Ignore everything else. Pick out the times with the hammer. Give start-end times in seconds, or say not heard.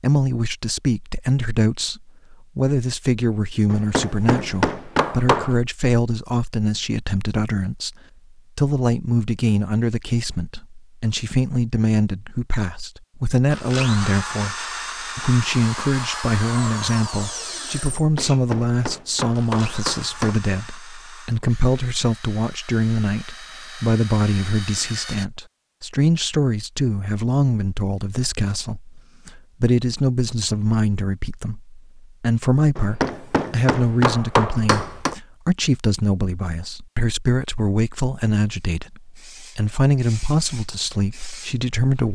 3.7-5.5, 17.9-20.4, 32.8-35.1.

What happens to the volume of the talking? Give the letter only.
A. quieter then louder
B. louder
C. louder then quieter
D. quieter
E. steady
E.